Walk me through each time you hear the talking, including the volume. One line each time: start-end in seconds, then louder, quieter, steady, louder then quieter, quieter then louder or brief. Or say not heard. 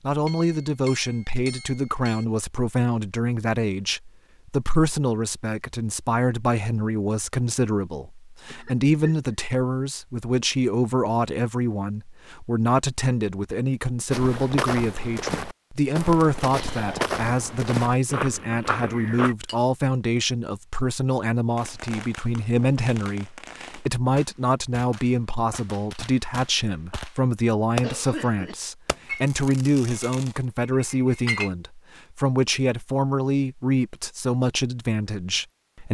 0.0-35.8 steady.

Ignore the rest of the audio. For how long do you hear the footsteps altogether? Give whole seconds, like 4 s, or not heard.
5 s.